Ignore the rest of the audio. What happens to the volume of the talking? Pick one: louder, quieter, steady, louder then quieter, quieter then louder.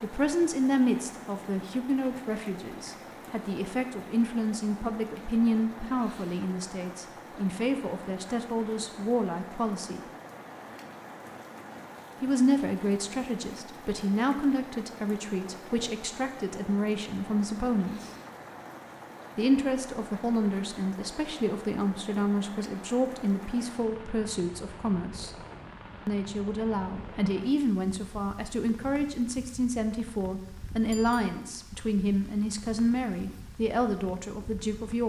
steady.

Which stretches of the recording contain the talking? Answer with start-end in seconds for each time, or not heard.
0.0-10.0, 12.2-18.1, 19.4-25.3, 26.1-35.0.